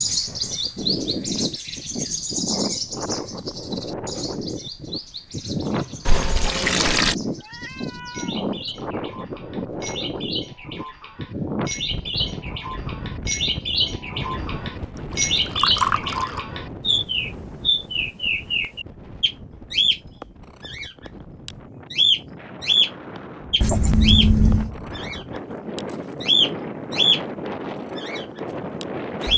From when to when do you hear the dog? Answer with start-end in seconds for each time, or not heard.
not heard.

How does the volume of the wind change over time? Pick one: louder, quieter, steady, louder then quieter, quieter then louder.
quieter then louder.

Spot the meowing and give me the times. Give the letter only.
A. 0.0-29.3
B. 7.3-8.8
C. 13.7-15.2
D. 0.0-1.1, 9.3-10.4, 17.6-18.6
B.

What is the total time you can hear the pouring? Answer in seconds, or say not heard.
3 s.